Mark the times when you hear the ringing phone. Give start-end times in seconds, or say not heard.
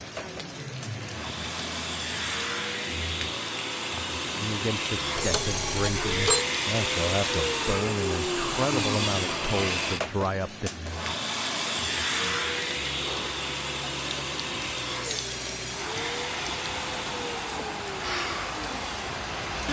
5.2-6.5.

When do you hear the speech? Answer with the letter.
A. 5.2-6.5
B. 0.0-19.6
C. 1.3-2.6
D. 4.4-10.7
D.